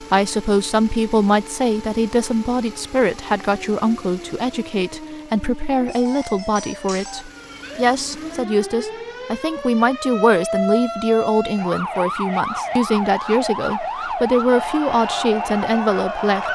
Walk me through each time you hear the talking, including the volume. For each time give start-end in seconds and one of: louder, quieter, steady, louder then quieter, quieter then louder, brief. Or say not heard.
0.0-16.4 steady.